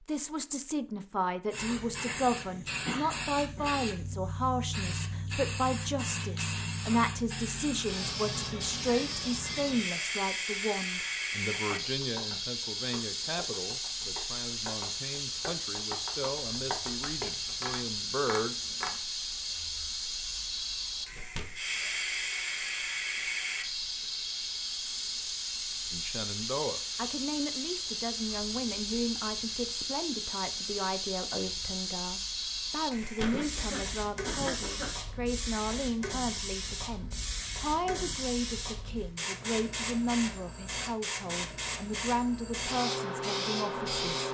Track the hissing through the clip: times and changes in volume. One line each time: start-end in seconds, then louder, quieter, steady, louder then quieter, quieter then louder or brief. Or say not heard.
1.5-44.2 steady.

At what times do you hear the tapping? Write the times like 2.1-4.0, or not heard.
11.5-18.9.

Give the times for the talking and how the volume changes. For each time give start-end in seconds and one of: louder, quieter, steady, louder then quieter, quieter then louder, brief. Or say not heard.
0.1-18.6 quieter
25.9-44.2 steady.